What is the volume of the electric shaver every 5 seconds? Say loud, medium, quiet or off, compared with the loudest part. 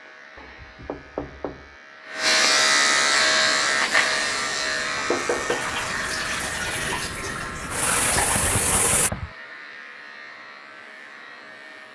loud, medium, quiet.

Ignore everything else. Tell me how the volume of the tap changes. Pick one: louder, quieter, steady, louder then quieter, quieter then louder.
louder.